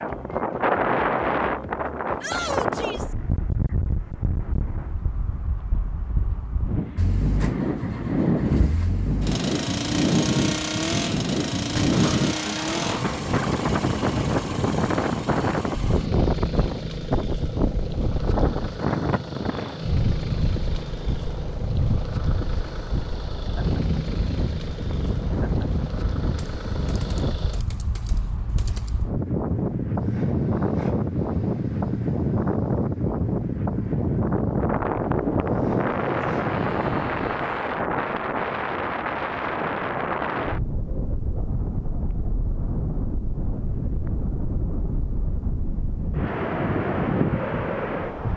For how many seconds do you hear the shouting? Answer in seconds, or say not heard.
2 s.